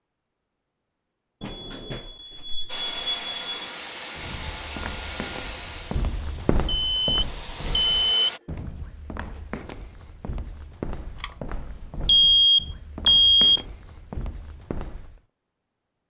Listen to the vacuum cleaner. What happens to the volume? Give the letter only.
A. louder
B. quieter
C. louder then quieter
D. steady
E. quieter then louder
E.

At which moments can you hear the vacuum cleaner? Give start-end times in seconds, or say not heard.
2.6-8.4.